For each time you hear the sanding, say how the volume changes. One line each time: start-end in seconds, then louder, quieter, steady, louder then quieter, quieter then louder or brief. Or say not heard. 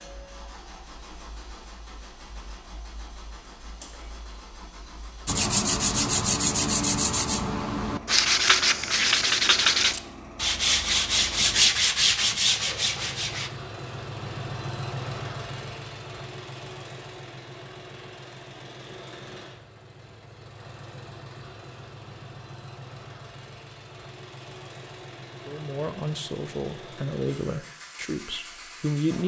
5.2-13.5 steady.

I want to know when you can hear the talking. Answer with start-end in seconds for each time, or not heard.
25.4-29.2.